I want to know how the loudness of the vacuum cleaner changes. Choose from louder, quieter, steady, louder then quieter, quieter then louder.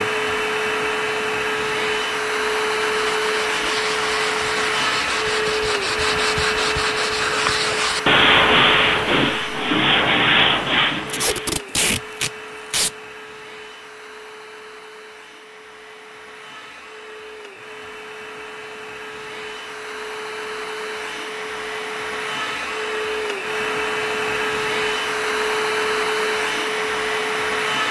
quieter then louder.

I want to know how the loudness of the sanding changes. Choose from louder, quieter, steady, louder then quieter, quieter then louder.
louder.